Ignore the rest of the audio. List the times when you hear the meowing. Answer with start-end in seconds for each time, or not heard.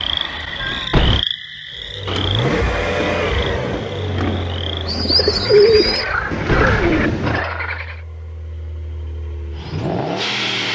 0.6-1.2, 6.2-7.0.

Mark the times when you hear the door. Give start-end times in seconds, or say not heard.
not heard.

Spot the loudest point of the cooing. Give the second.
6 s.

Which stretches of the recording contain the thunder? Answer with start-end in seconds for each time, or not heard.
2.0-5.6.